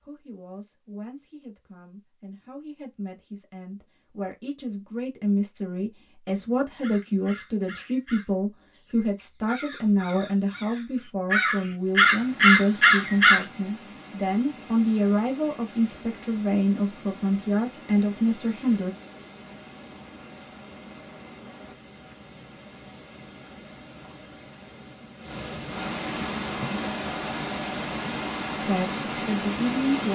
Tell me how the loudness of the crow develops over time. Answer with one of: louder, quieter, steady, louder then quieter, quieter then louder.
louder.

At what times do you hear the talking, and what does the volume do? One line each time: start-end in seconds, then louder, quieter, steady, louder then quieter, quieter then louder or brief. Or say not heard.
0.0-18.9 louder
28.6-30.1 brief.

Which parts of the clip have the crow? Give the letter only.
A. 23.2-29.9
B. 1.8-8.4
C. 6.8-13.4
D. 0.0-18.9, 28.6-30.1
C.